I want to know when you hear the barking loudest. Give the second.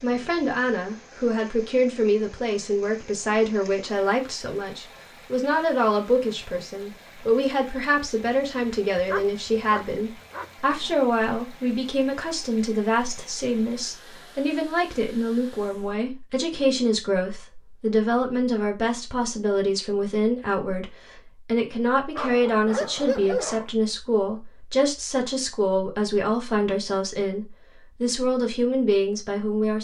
23 s.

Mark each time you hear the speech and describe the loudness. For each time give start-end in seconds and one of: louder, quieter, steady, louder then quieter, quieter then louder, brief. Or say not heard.
0.0-29.7 steady.